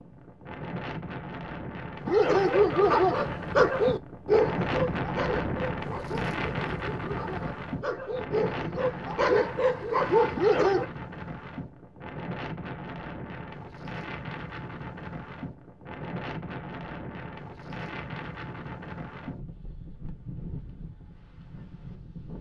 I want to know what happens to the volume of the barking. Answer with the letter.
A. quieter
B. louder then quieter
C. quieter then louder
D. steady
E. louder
C.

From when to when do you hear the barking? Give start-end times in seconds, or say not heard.
2.0-10.8.